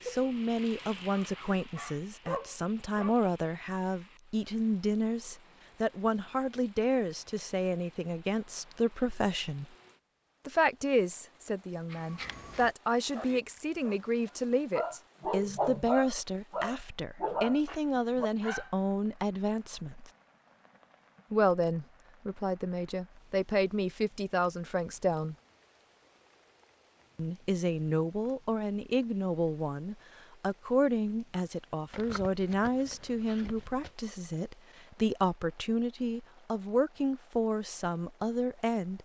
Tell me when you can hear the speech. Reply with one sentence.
The speech can be heard from 0.1 to 9.7 s, from 10.4 to 20.1 s, from 21.3 to 25.4 s and from 27.1 to 38.9 s.